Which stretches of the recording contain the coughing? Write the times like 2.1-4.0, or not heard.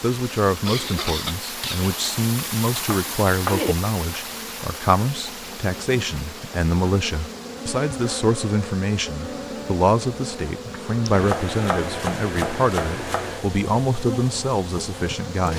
0.5-1.9.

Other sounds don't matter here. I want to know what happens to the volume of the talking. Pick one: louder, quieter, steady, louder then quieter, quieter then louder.
steady.